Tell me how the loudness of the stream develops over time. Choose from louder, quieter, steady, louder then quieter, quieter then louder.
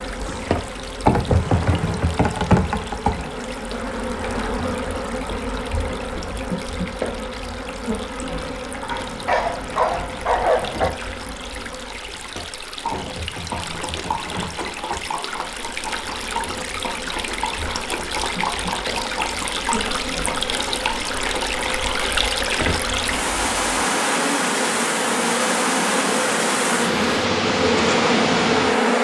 louder.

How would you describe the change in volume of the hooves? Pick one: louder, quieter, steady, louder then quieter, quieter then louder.
steady.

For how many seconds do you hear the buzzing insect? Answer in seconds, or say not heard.
29 s.